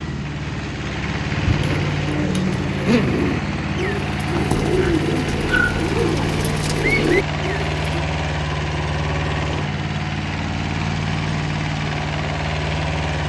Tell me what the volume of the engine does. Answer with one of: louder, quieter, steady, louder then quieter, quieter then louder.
steady.